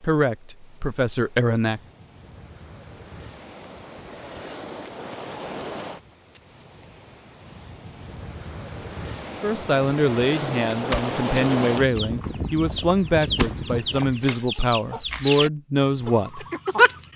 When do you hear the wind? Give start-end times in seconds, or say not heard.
0.0-14.3.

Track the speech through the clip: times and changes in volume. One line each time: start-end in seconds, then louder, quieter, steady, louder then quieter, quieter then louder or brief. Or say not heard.
0.0-1.8 brief
9.4-16.4 steady.